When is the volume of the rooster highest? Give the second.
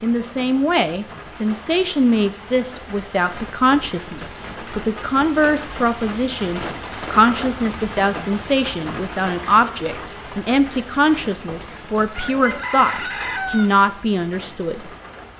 13 s.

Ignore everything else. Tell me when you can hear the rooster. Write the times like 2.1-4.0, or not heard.
12.2-13.7.